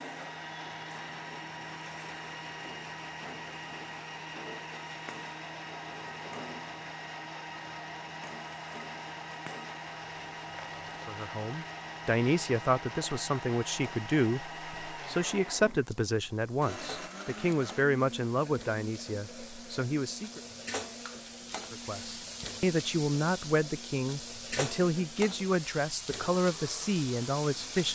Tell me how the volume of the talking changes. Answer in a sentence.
The loudness of the talking stays about the same.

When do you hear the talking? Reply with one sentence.
You can hear the talking from 11.1 to 20.4 s and from 21.7 to 27.9 s.